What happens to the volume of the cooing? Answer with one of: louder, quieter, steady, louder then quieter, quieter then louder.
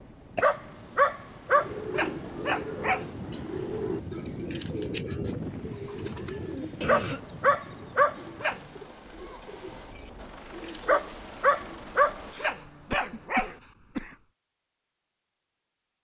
quieter.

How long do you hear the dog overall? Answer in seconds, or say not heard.
7 s.